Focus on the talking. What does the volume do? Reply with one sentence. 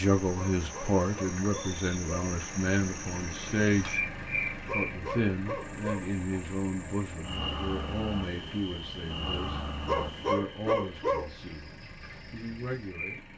The loudness of the talking goes down.